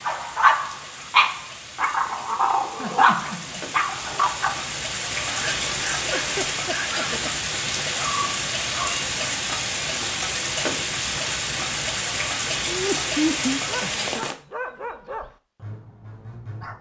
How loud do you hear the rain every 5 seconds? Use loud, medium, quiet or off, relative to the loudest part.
medium, loud, loud, off.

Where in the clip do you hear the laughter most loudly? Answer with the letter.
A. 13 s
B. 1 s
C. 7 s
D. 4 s
A.